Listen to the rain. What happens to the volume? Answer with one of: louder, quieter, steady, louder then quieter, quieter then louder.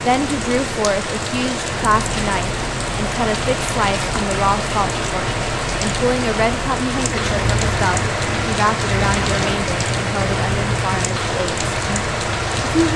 steady.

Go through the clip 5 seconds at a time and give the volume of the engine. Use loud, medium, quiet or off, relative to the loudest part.
medium, loud, loud.